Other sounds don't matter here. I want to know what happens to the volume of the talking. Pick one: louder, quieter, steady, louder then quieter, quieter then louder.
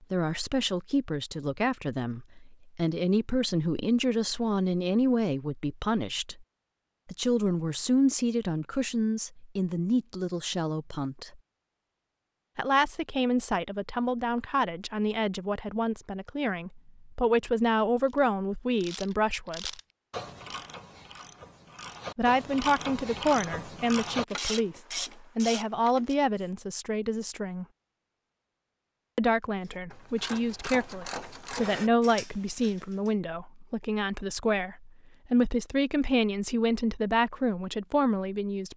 steady.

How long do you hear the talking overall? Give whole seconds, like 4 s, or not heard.
33 s.